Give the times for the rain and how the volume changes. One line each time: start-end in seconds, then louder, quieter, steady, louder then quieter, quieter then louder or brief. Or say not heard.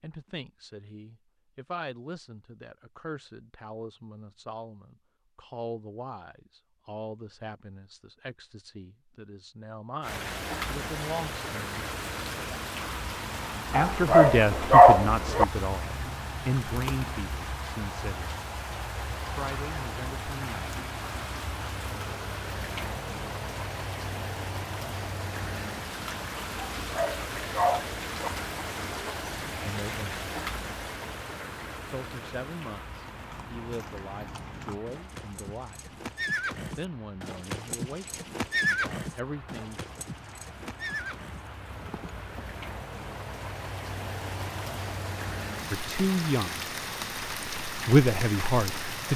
10.0-49.1 quieter then louder.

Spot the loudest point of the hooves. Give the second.
39 s.